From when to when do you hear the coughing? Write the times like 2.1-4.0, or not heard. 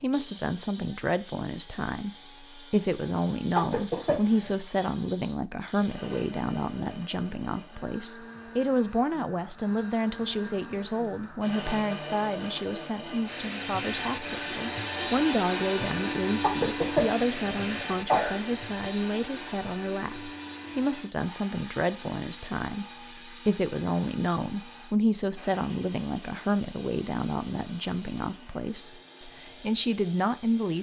3.5-4.6, 16.4-18.4.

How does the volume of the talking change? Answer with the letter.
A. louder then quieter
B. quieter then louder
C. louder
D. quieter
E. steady
E.